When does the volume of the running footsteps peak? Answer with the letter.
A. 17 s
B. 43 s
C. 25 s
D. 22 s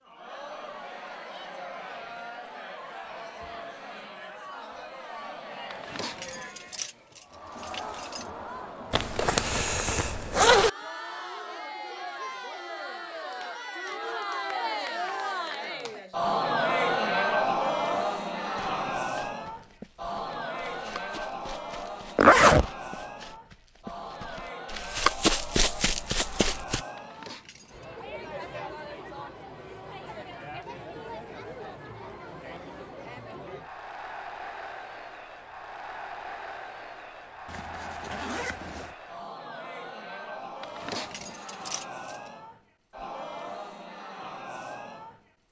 C.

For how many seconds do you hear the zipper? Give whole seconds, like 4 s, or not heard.
4 s.